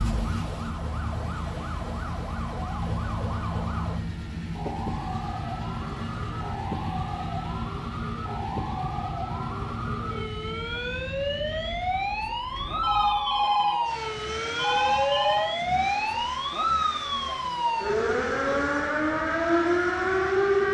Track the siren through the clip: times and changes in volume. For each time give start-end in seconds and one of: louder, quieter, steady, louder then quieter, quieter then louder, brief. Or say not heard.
0.0-20.6 louder.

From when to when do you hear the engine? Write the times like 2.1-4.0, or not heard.
0.0-20.6.